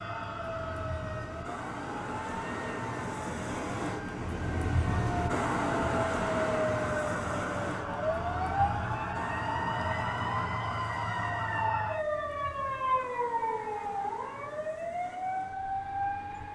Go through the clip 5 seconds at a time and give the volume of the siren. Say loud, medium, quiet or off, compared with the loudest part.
medium, loud, loud, loud.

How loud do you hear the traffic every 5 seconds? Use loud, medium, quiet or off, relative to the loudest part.
loud, loud, quiet, quiet.